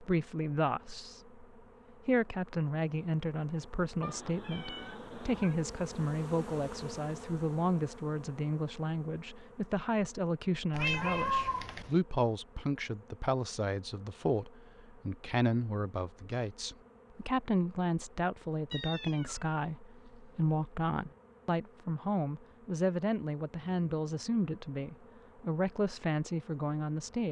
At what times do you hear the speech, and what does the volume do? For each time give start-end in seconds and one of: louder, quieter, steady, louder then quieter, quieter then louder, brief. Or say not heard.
0.0-1.4 brief
2.0-27.2 steady.